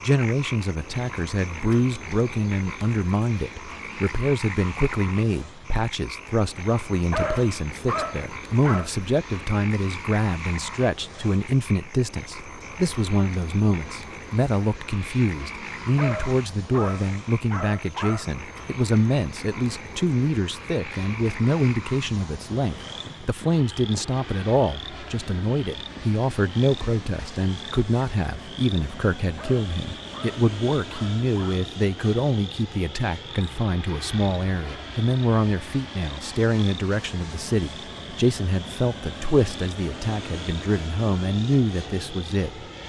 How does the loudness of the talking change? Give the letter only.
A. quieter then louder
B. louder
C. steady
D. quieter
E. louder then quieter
C.